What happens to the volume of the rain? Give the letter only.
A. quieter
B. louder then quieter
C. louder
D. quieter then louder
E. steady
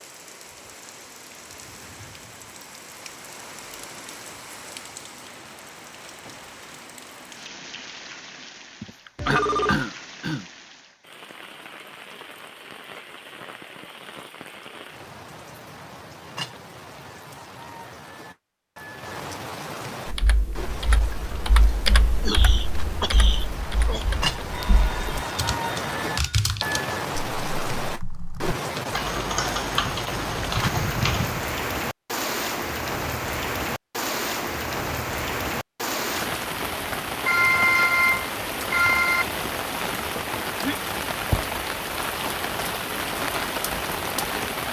C.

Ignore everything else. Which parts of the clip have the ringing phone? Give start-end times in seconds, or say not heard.
9.2-9.8, 24.5-26.2, 37.2-39.2.